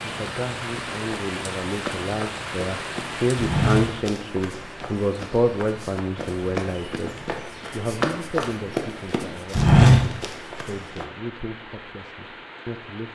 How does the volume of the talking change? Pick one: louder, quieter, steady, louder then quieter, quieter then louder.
louder then quieter.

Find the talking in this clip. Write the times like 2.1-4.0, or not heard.
0.0-13.1.